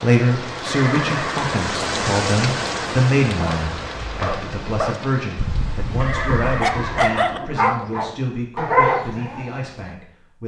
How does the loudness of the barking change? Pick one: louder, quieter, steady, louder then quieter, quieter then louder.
louder.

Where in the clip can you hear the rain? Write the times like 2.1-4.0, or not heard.
0.0-7.5.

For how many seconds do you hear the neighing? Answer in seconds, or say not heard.
3 s.